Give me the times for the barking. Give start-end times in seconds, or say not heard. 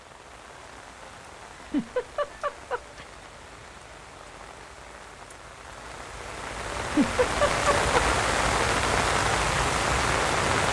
not heard.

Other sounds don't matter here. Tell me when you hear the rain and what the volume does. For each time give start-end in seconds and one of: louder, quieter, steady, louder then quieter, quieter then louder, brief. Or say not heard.
0.0-10.6 louder.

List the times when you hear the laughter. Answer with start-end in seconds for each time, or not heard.
1.6-3.0, 6.8-8.0.